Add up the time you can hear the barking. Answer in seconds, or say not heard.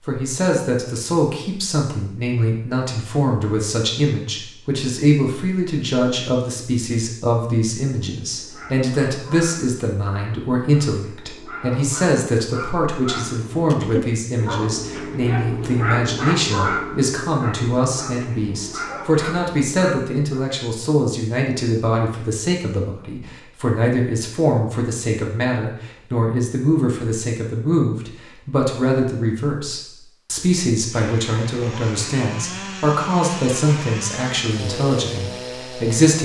12 s.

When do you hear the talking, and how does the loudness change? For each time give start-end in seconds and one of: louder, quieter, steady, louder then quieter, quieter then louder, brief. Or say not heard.
0.0-36.2 steady.